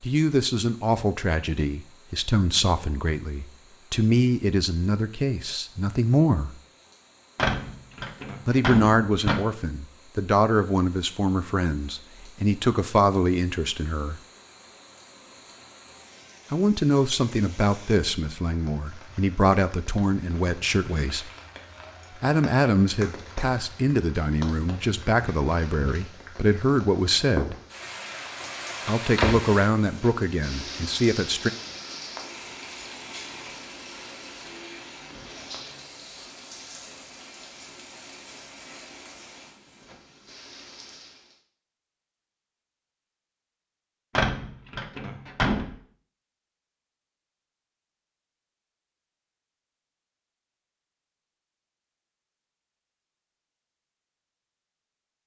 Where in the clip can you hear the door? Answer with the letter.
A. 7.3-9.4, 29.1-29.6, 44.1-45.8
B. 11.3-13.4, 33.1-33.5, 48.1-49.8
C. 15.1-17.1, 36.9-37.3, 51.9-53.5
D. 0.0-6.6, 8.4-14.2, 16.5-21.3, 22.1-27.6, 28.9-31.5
A.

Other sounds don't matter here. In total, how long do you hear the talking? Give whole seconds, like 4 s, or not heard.
25 s.